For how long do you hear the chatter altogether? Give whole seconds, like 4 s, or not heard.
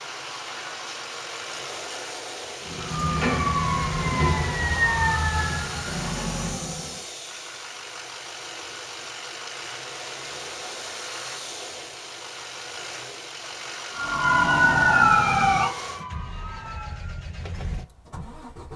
not heard.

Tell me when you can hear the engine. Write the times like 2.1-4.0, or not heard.
0.0-18.7.